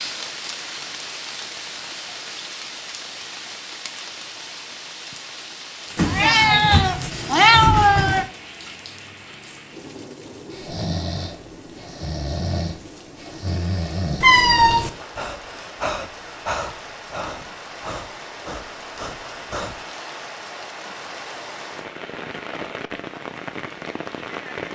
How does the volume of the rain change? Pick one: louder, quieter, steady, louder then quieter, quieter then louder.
quieter then louder.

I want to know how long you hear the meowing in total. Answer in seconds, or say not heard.
3 s.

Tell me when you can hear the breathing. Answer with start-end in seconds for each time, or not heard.
10.5-19.9.